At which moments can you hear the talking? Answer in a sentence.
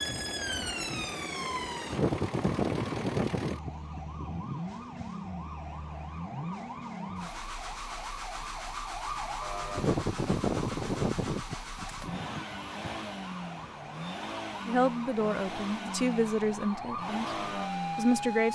The talking can be heard from 14.7 to 17.3 s and from 17.9 to 18.5 s.